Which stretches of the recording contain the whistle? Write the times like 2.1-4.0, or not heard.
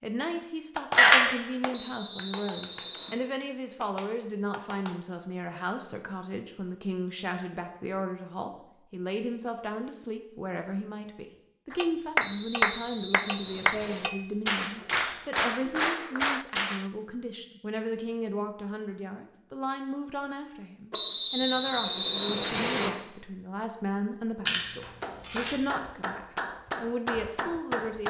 1.7-3.2, 12.2-14.1, 20.9-22.9.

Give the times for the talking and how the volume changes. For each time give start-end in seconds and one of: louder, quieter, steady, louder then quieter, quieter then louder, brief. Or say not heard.
0.0-28.0 steady.